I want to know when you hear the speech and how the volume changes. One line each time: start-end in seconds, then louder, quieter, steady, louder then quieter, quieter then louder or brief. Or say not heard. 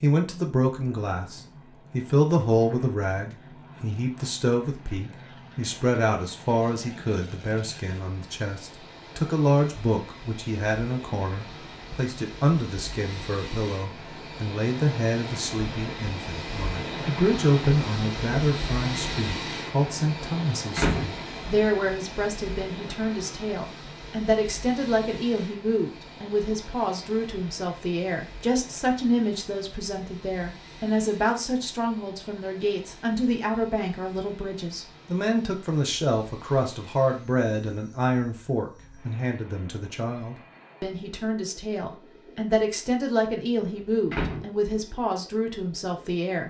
0.0-46.4 steady.